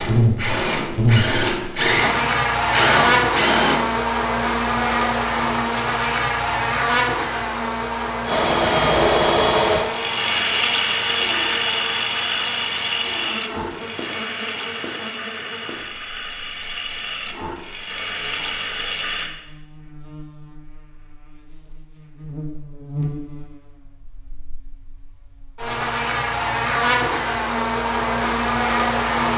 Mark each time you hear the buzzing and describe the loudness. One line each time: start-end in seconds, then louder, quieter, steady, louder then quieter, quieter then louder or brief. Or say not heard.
0.0-29.3 quieter then louder.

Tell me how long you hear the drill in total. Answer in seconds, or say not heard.
15 s.